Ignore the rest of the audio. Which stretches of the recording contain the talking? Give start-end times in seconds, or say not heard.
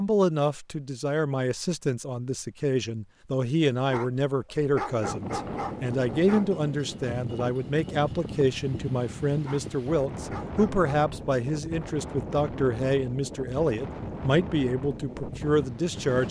0.0-16.2.